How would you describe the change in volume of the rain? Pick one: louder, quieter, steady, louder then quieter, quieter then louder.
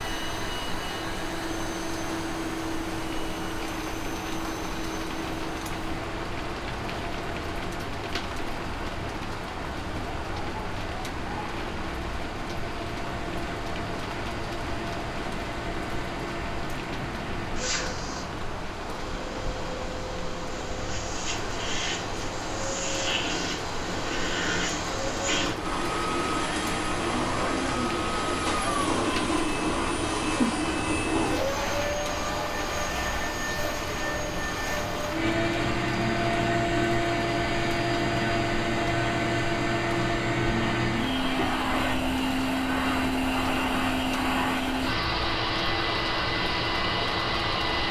steady.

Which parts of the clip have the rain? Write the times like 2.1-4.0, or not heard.
0.0-47.8.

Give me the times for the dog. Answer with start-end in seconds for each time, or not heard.
not heard.